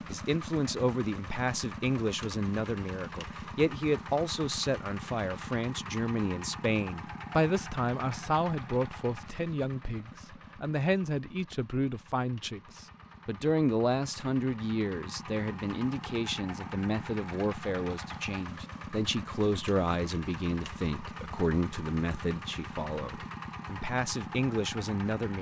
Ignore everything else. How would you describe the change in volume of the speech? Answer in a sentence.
The loudness of the speech stays about the same.